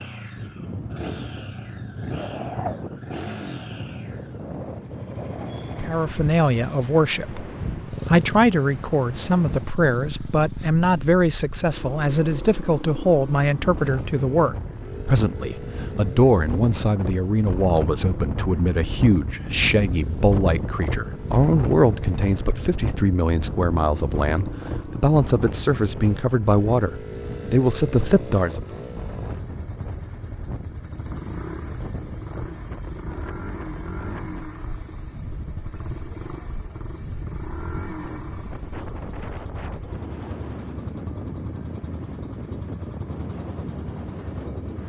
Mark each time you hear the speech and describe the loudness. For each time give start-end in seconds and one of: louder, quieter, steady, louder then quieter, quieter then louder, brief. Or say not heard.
5.8-28.8 steady.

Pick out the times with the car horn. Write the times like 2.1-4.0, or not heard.
not heard.